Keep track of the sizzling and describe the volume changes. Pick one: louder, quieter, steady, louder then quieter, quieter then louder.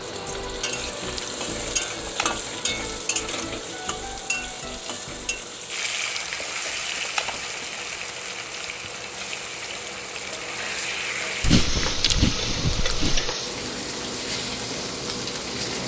steady.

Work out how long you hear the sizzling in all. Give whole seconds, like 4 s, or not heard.
16 s.